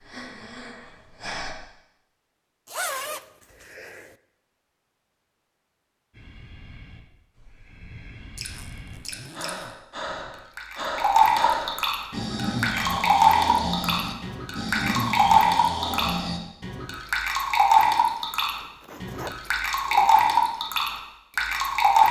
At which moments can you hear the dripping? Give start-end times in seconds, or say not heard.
8.3-22.0.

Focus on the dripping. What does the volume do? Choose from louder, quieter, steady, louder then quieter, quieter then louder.
steady.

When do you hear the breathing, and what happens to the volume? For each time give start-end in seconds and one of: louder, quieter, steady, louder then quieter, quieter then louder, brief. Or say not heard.
0.0-1.6 brief
6.1-16.4 louder.